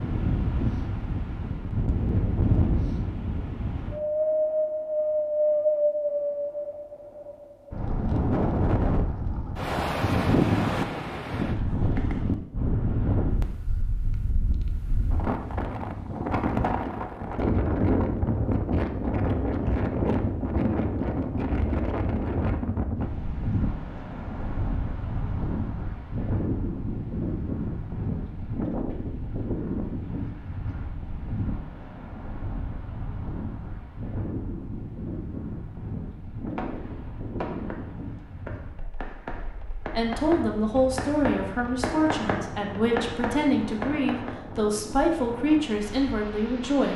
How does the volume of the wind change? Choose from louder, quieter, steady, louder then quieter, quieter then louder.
quieter.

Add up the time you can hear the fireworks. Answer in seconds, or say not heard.
8 s.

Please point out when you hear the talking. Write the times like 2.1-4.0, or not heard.
40.0-46.9.